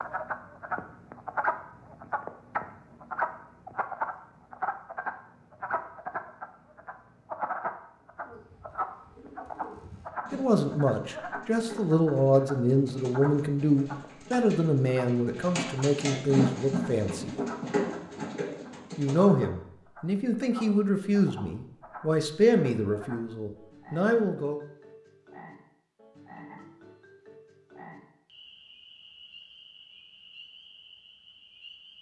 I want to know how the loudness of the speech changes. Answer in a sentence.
The loudness of the speech stays about the same.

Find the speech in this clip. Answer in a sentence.
The speech can be heard from 10.3 to 17.3 s and from 18.9 to 24.6 s.